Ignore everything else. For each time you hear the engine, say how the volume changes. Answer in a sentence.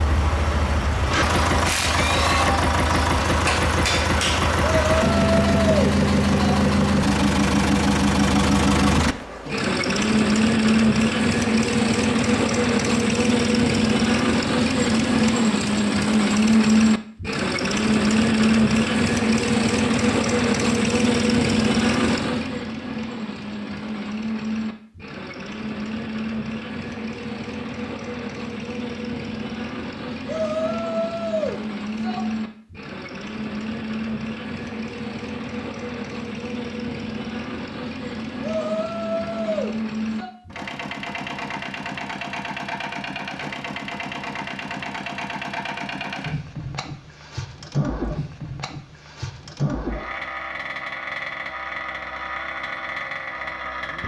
You can hear the engine from 0.0 to 54.0 s, getting quieter.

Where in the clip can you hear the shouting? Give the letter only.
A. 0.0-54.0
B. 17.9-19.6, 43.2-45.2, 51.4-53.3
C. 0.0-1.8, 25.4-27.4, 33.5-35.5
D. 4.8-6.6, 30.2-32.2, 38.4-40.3
D.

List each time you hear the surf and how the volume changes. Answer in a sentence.
You can't hear the surf here.